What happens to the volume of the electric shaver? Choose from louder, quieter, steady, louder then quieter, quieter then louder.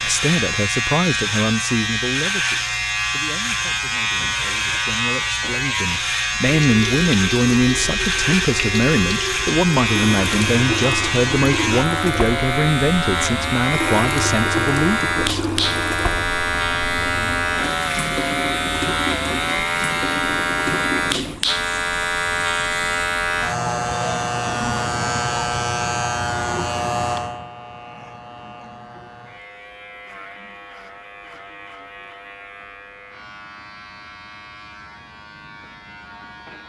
quieter.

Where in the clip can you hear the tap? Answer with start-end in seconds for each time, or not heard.
6.6-22.9.